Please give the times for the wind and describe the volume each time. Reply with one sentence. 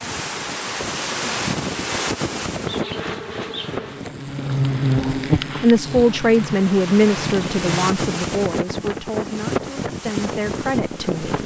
You can hear the wind from 0.0 to 11.4 s, getting quieter then louder.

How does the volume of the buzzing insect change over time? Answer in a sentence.
The volume of the buzzing insect goes up, then down.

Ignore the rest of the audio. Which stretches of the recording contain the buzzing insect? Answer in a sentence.
The buzzing insect can be heard from 2.6 to 8.1 s.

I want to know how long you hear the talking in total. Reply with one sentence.
The talking can be heard for 6 seconds in total.